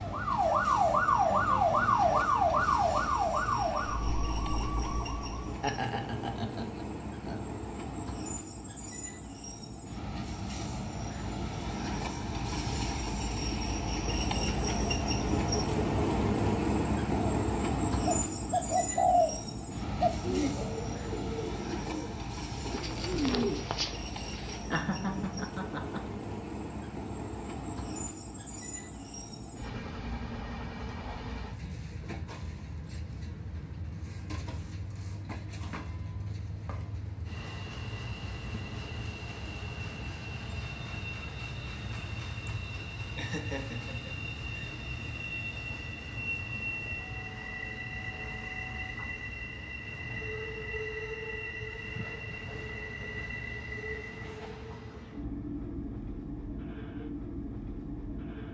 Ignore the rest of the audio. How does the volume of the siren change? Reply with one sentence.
The volume of the siren goes down.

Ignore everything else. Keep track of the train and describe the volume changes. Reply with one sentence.
The loudness of the train goes up, then down.